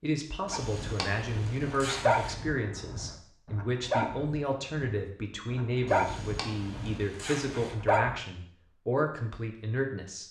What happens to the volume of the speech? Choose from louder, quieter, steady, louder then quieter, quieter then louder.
steady.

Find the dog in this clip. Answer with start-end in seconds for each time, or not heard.
0.5-8.2.